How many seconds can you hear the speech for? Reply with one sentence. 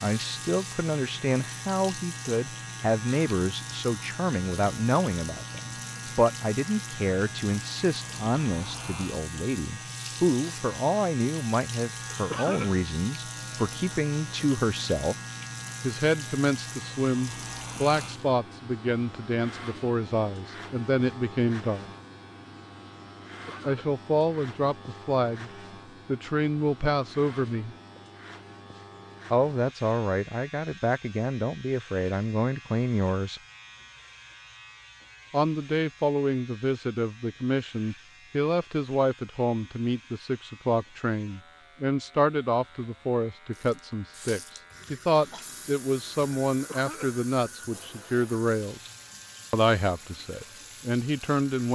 The speech can be heard for 45 seconds in total.